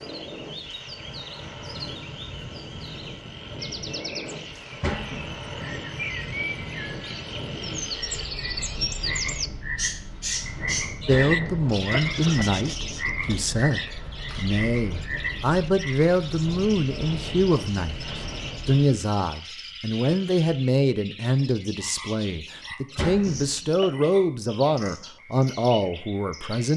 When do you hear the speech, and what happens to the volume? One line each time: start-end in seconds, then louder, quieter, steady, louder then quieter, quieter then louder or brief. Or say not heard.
11.1-26.7 steady.